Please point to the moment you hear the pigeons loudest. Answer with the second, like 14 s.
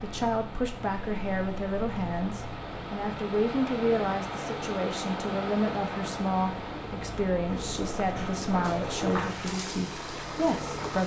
9 s.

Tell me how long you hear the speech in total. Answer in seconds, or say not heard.
11 s.